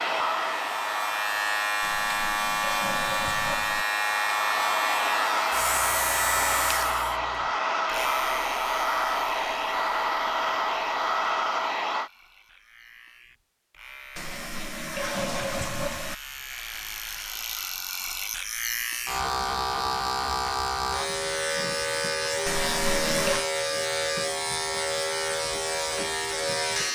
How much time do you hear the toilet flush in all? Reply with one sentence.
The toilet flush can be heard for 5 seconds in total.